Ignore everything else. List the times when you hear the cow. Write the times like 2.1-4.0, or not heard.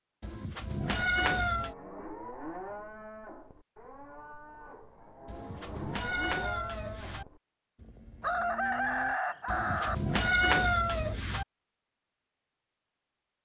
1.5-9.2.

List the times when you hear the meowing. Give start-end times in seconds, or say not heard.
0.2-1.8, 5.2-7.2, 9.4-11.4.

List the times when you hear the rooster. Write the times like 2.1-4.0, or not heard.
8.2-9.9.